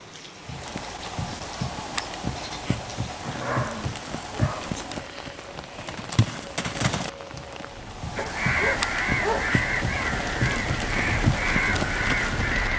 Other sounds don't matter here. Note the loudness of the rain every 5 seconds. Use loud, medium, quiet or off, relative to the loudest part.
medium, medium, loud.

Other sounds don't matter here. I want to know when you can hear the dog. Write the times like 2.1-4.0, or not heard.
3.4-4.8, 8.2-9.6.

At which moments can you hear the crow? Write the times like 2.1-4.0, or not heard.
8.2-12.7.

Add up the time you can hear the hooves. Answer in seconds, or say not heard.
12 s.